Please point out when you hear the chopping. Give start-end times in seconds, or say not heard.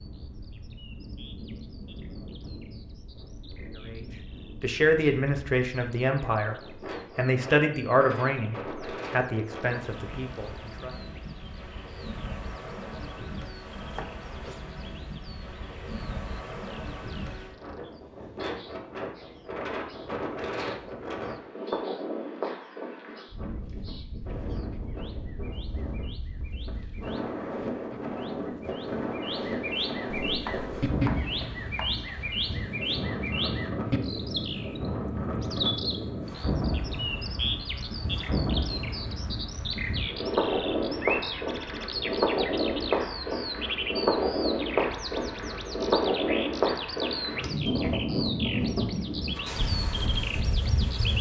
13.8-15.2, 30.1-31.9.